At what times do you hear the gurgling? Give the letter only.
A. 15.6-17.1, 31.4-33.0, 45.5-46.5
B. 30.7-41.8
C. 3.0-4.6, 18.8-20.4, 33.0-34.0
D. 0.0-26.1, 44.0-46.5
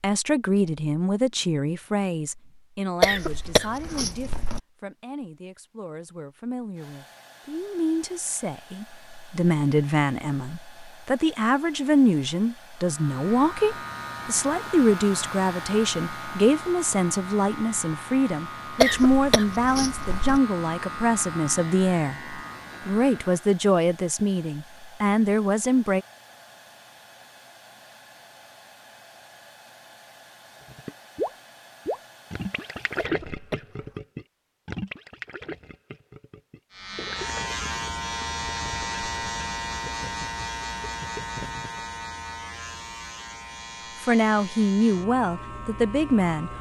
B.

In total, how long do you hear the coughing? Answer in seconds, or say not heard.
4 s.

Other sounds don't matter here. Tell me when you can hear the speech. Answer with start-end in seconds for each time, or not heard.
0.0-26.1, 44.0-46.5.